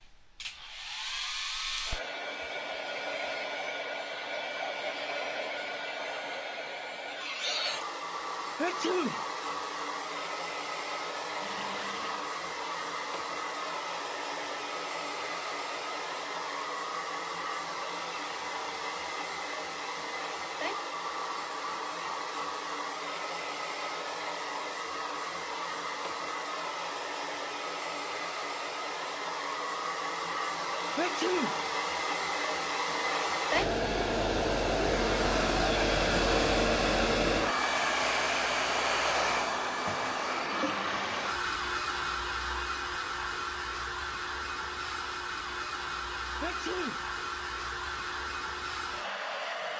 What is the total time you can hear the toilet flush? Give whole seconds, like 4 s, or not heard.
2 s.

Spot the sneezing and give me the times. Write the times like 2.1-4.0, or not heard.
8.6-9.2, 30.9-31.6, 46.4-47.0.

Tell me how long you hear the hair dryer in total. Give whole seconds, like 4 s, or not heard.
50 s.